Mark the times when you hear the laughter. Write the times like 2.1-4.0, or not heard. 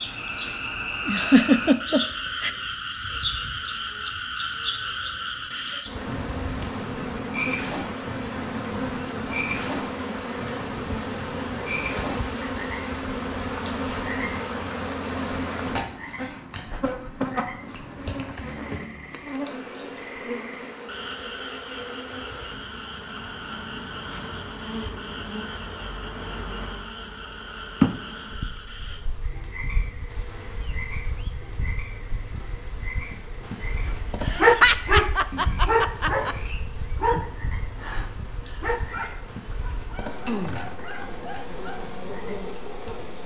1.1-2.5, 34.2-36.4.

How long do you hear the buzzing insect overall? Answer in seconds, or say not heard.
43 s.